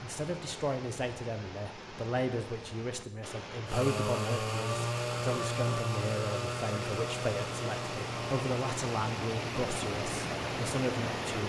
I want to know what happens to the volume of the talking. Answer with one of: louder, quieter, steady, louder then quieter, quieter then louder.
steady.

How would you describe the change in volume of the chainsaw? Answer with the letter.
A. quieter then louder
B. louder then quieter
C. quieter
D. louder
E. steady
C.